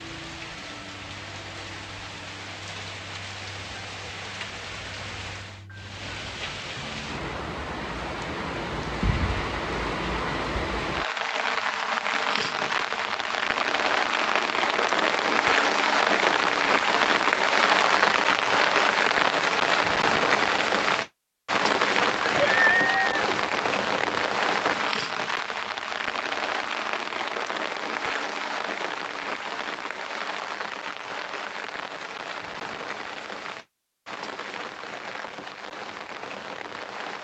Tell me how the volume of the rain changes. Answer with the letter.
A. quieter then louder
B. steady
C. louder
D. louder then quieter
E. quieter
D.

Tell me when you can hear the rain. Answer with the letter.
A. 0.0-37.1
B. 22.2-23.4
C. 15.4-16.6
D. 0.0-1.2
A.